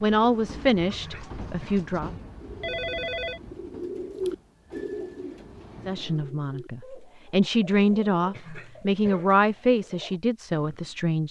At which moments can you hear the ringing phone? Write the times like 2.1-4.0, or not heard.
2.6-3.4.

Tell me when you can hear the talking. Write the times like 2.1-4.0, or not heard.
0.0-2.1, 5.8-11.2.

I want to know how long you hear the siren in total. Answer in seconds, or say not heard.
not heard.